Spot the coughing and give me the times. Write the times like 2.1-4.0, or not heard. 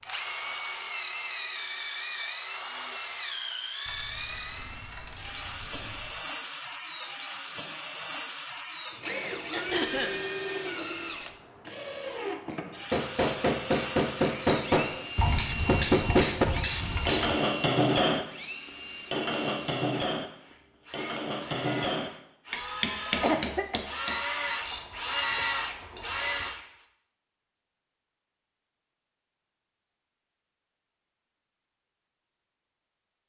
9.5-10.2, 23.1-23.8.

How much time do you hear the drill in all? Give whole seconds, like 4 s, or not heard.
27 s.